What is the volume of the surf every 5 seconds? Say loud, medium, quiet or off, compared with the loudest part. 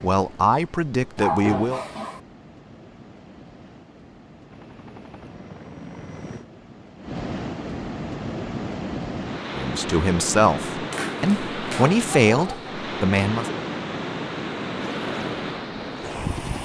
quiet, loud, loud, loud.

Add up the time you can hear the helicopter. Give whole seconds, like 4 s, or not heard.
4 s.